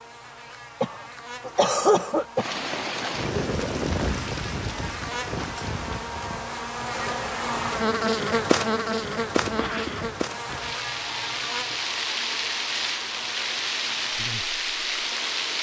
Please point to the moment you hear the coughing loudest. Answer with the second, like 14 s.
2 s.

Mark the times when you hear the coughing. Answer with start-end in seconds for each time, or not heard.
0.8-2.5, 9.3-10.1.